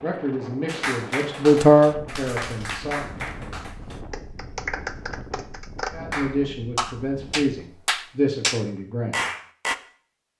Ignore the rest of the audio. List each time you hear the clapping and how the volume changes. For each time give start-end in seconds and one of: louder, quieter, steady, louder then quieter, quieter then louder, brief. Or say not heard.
0.7-9.8 louder.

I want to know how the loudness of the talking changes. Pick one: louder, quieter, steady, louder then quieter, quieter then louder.
louder then quieter.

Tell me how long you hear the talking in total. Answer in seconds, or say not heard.
6 s.